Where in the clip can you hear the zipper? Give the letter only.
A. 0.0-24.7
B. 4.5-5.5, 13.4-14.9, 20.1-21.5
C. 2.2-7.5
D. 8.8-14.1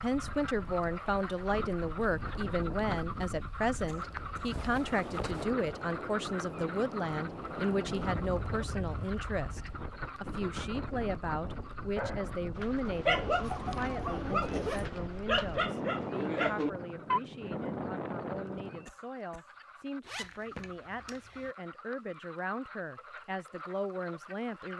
B.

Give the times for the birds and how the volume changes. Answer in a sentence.
You can't hear the birds here.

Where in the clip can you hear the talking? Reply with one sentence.
You can hear the talking from 0.0 to 24.7 s.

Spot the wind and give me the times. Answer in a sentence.
You can hear the wind from 0.0 to 18.9 s.